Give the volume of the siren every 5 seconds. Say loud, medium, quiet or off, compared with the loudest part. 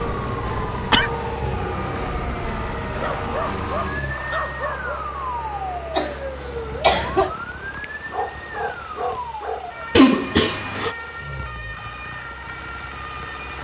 loud, loud, medium.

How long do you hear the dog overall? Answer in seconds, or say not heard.
4 s.